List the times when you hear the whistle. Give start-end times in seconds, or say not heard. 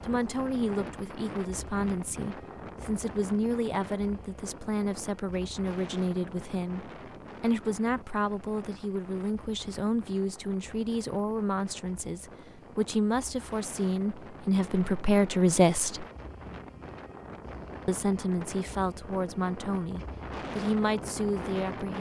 not heard.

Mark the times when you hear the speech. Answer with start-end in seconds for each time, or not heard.
0.0-16.1, 17.9-21.9.